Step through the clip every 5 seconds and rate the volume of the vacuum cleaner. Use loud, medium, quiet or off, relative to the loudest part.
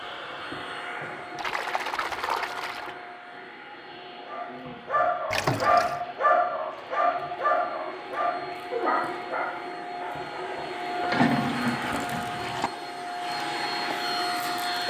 medium, medium, loud.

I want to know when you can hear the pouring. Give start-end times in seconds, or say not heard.
1.4-3.0, 5.3-6.0, 11.1-12.7.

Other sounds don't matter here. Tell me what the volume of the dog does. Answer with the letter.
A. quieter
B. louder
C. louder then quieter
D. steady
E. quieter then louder
A.